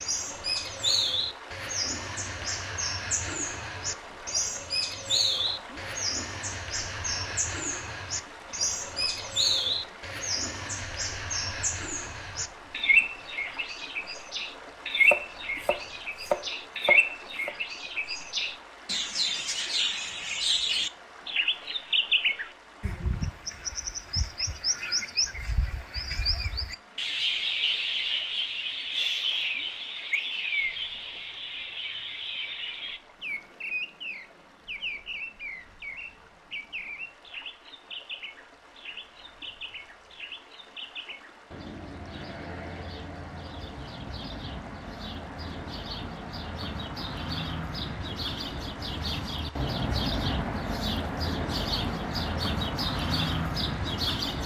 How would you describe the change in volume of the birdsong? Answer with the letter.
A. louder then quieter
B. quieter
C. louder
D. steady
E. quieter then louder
E.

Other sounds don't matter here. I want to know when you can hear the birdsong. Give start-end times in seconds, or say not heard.
0.0-54.4.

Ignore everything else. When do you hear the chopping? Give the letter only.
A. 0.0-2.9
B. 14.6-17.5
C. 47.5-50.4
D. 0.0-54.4
B.